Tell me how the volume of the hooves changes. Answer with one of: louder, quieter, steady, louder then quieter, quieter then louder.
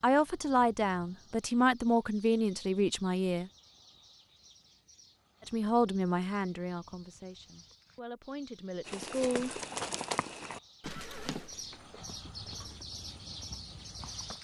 quieter.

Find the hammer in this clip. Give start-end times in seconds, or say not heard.
not heard.